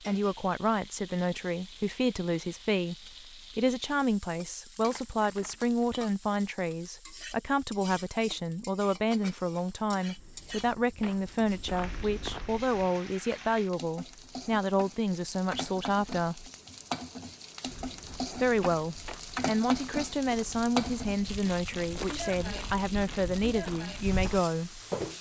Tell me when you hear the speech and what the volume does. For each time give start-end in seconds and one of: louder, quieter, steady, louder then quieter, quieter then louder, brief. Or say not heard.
0.1-16.5 steady
18.4-24.8 steady.